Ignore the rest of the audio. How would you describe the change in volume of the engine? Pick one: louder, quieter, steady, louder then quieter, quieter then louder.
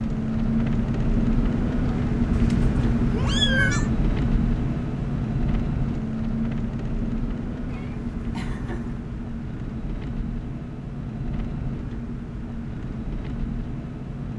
quieter.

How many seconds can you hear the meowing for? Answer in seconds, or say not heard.
3 s.